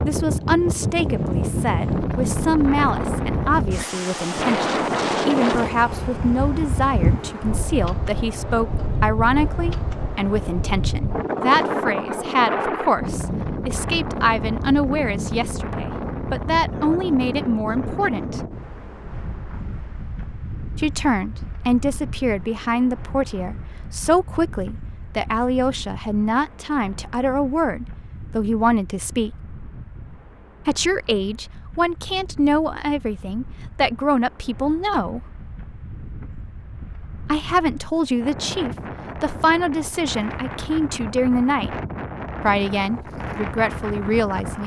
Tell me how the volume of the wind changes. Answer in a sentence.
The loudness of the wind goes down, then up.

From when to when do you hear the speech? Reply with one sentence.
The speech can be heard from 0.0 to 18.4 s, from 20.8 to 29.3 s, from 30.6 to 35.2 s, from 37.2 to 41.8 s and from 42.4 to 44.6 s.